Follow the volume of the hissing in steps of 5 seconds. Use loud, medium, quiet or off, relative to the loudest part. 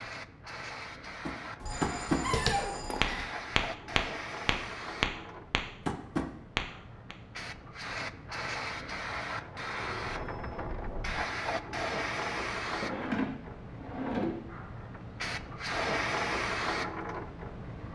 medium, medium, loud, loud.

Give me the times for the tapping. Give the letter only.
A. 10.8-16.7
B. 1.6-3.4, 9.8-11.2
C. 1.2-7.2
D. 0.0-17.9
C.